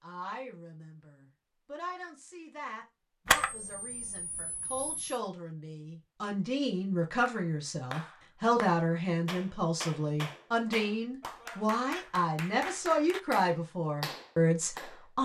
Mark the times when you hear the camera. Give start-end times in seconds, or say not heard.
3.2-5.2.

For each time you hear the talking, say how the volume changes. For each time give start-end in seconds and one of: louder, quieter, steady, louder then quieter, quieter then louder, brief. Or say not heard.
0.0-15.2 louder.